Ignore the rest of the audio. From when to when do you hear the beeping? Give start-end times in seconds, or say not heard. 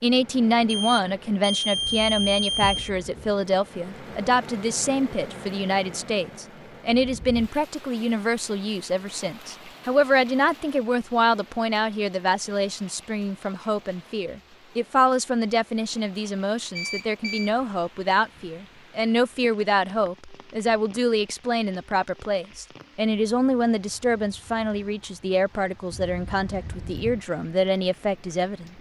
0.7-2.9, 16.8-17.5, 25.9-27.2.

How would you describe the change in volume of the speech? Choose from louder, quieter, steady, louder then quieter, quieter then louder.
steady.